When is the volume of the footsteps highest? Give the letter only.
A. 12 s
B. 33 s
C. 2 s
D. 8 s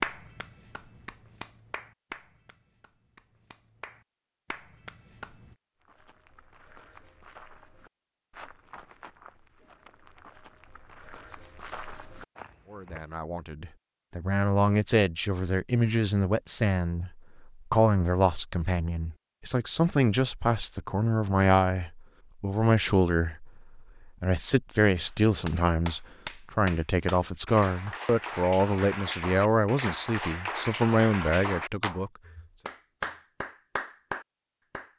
A.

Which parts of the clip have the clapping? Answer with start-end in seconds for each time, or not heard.
0.0-5.5, 25.0-34.9.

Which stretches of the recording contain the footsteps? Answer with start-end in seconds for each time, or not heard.
5.8-13.2.